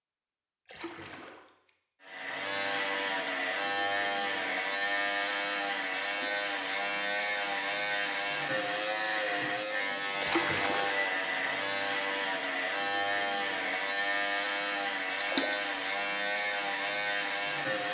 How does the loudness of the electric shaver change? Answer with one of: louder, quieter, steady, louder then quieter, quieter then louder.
steady.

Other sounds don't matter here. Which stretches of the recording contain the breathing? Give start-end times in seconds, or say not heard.
not heard.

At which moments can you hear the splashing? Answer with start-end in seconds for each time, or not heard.
0.7-1.7, 6.0-6.5, 10.2-11.0, 15.2-15.6.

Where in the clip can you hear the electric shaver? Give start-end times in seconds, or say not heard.
2.0-17.8.